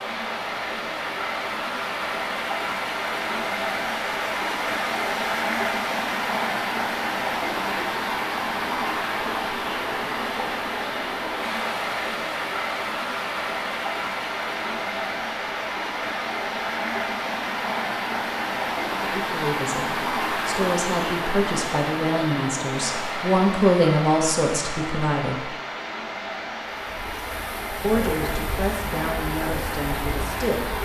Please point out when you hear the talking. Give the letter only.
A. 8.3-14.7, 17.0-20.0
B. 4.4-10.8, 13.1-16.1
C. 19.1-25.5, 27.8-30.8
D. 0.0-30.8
C.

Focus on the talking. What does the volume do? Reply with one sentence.
The loudness of the talking goes up, then down.